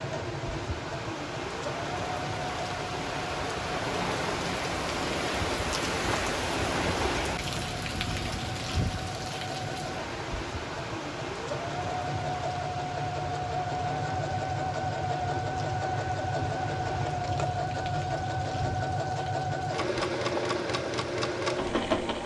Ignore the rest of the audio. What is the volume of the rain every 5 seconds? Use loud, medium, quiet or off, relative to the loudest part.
loud, loud, medium, medium, medium.